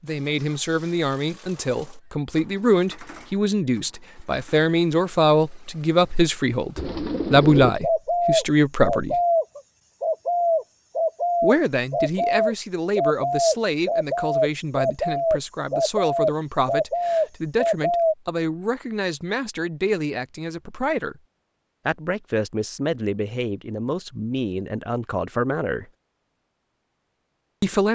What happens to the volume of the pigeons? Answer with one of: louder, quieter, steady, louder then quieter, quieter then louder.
steady.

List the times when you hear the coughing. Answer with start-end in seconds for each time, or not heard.
not heard.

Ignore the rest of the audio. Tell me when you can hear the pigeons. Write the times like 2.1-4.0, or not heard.
6.8-18.1.